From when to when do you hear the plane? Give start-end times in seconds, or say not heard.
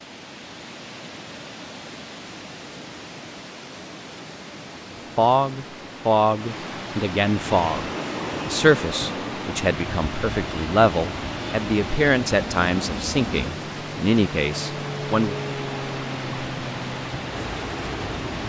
7.4-18.4.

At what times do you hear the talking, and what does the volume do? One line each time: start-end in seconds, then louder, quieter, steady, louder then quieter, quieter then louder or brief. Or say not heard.
5.2-15.3 steady.